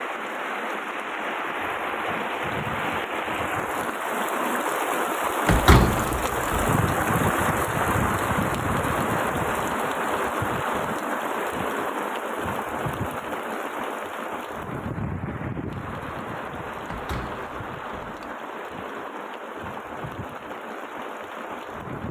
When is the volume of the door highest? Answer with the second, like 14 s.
6 s.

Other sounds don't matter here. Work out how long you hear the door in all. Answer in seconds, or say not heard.
3 s.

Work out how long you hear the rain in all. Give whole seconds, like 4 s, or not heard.
22 s.